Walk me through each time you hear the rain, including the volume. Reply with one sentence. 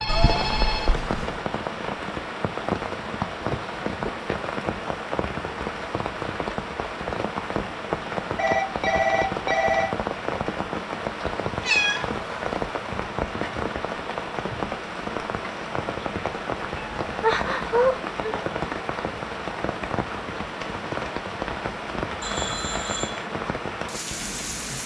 The rain can be heard from 0.0 to 24.8 s, at a steady volume.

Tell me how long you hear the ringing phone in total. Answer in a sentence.
You can hear the ringing phone for 4 seconds altogether.